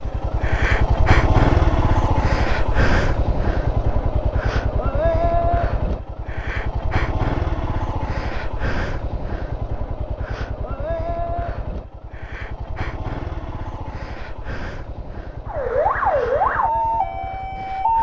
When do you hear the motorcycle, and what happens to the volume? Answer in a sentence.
You can hear the motorcycle from 0.0 to 17.9 s, getting quieter.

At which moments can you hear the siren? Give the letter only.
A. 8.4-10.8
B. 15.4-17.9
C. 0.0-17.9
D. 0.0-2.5
B.